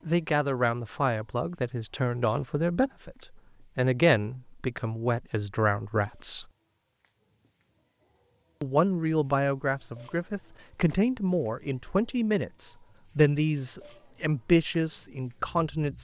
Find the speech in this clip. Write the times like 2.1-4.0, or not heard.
0.1-6.5, 8.6-15.9.